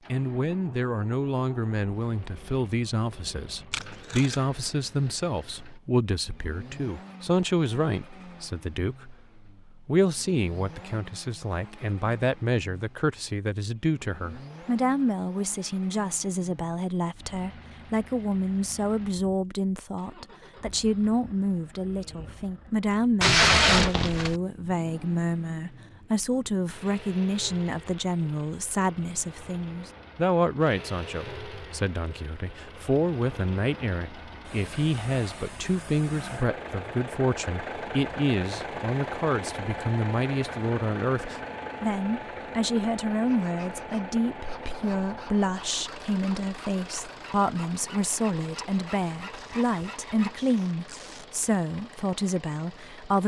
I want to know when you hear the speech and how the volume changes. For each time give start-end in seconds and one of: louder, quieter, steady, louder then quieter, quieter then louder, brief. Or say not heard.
0.1-53.2 steady.